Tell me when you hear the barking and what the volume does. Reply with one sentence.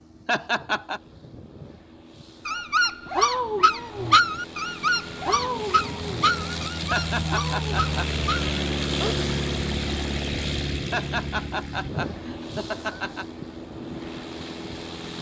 The barking can be heard from 2.5 to 9.2 s, getting quieter.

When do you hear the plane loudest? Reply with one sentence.
The volume of the plane peaks at 9 seconds.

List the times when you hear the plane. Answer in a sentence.
The plane can be heard from 0.0 to 15.1 s.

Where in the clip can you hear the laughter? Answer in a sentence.
The laughter can be heard from 0.2 to 1.0 s, from 6.9 to 8.1 s and from 10.9 to 13.2 s.